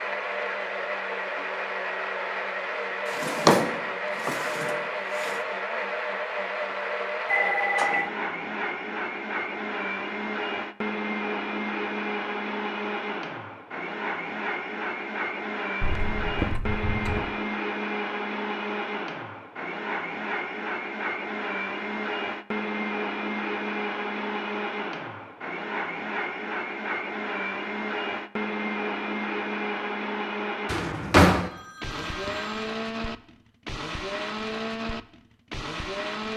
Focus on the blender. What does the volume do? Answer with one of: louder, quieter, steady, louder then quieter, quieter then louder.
steady.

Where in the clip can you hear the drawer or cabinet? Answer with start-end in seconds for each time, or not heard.
3.1-5.3, 30.6-31.5.